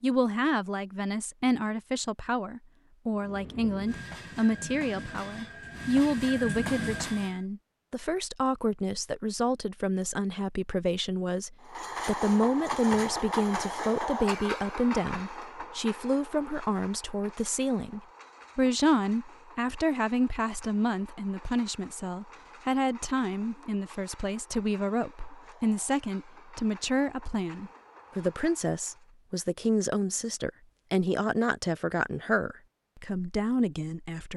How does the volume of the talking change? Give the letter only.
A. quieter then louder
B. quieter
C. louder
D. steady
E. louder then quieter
D.